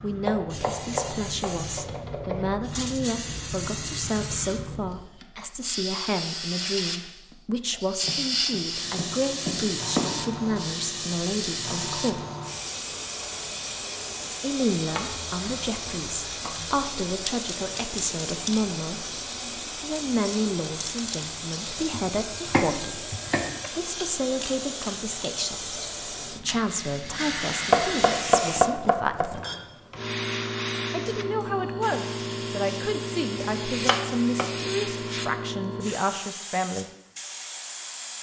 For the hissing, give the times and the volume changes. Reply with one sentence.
You can hear the hissing from 0.0 to 38.1 s, at a steady volume.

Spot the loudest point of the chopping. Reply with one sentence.
The volume of the chopping peaks at 28 seconds.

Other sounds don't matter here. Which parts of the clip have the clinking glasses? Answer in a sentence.
You can hear the clinking glasses from 29.2 to 30.1 s.